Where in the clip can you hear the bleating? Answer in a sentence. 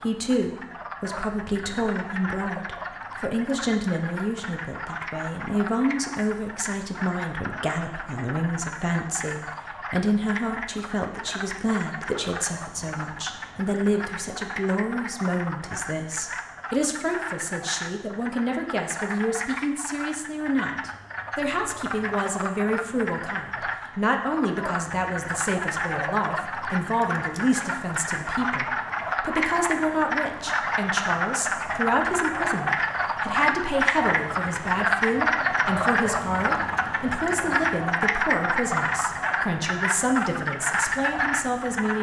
You can't hear the bleating here.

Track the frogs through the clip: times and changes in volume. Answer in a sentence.
You can hear the frogs from 0.0 to 41.9 s, getting louder.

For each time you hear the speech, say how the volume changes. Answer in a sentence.
The speech can be heard from 0.0 to 41.9 s, at a steady volume.